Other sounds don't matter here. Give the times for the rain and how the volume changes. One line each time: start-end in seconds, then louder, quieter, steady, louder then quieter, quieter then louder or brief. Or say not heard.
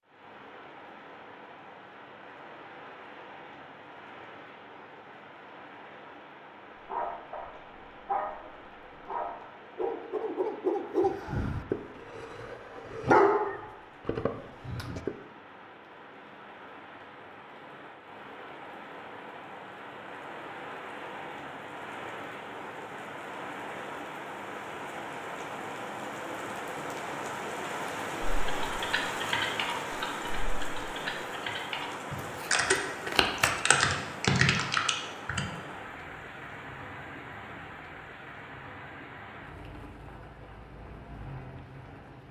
0.0-42.2 louder then quieter.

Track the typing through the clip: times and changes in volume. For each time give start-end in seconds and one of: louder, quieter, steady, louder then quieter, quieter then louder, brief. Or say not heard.
28.4-35.5 quieter then louder.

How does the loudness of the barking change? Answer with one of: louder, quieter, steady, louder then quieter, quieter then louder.
louder.